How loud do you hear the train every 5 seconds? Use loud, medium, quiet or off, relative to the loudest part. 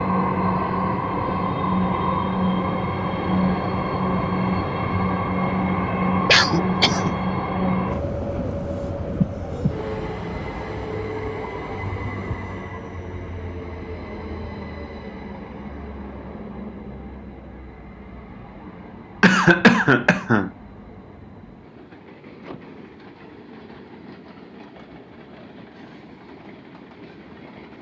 loud, loud, medium, quiet, quiet, quiet.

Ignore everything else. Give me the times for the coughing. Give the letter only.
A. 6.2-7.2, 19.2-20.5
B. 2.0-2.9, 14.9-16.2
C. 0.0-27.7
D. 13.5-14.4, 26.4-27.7
A.